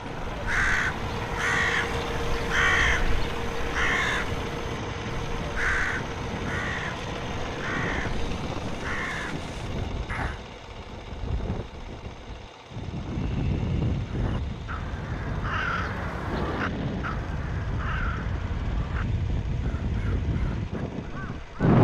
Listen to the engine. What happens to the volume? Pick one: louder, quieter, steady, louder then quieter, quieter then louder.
quieter.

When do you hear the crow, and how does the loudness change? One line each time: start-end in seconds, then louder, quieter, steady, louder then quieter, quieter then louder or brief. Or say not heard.
0.2-10.4 quieter
14.1-21.8 quieter.